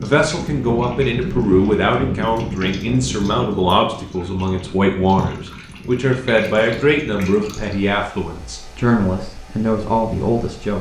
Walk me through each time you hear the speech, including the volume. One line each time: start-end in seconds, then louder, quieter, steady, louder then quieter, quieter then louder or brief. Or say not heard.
0.0-10.7 steady.